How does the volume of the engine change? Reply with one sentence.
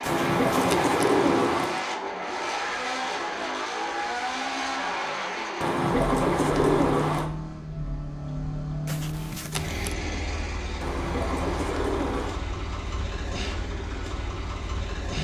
The loudness of the engine goes down.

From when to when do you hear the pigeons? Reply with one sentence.
The pigeons can be heard from 0.1 to 1.8 s, from 5.6 to 7.3 s and from 10.8 to 12.4 s.